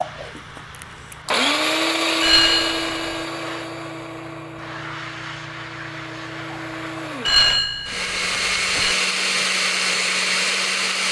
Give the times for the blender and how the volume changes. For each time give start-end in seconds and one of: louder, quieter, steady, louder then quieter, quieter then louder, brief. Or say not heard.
0.0-11.0 quieter then louder.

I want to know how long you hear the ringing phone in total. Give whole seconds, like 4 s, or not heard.
3 s.